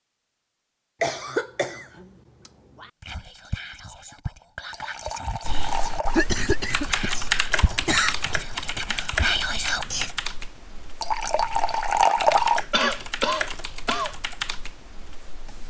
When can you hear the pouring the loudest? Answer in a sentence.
The loudest moment of the pouring is at 12 seconds.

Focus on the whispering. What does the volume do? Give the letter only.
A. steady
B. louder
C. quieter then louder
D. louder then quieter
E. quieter
B.